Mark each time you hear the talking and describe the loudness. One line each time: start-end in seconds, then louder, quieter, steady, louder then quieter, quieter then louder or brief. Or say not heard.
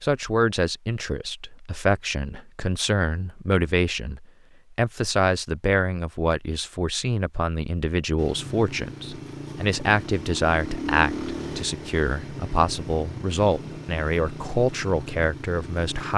0.0-16.1 steady.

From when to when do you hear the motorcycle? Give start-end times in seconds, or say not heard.
8.2-16.1.